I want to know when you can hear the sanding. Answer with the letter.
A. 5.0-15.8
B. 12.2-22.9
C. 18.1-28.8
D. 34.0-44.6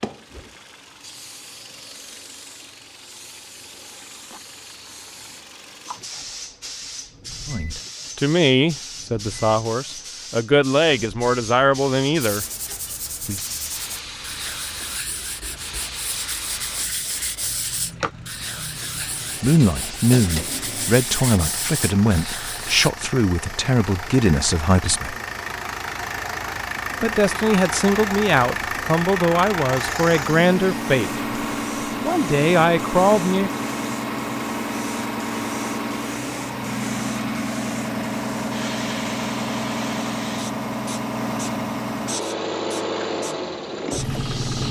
B.